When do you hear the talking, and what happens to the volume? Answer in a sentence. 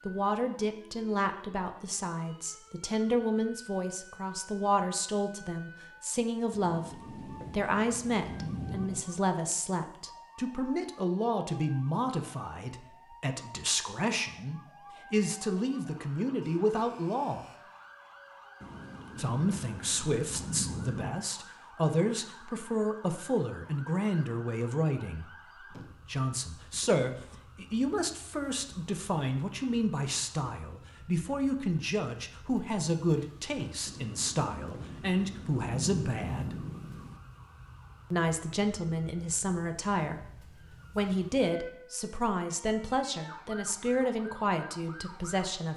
The talking can be heard from 0.1 to 17.4 s, at a steady volume; from 19.1 to 36.5 s, at a steady volume; and from 38.1 to 45.7 s, at a steady volume.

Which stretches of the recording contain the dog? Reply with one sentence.
You can't hear the dog here.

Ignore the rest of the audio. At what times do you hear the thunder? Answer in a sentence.
The thunder can be heard from 6.5 to 9.1 s, from 18.6 to 21.2 s and from 33.9 to 37.2 s.